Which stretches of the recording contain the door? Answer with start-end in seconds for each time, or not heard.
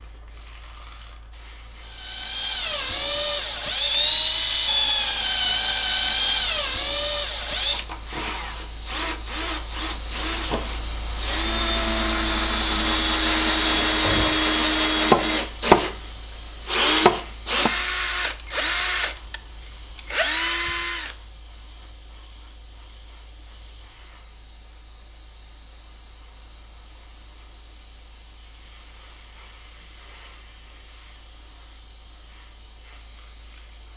13.7-14.3.